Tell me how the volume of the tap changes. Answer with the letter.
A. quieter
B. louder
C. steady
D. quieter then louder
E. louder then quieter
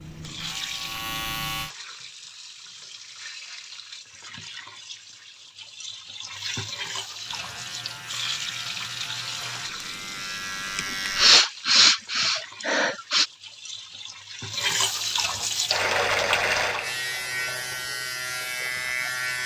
B.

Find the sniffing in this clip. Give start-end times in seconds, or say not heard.
10.8-13.2.